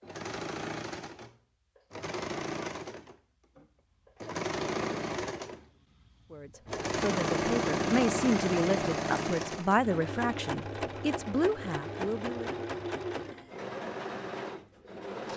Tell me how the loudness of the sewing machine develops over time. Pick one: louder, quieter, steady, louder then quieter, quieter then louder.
louder then quieter.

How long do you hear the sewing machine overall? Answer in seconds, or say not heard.
15 s.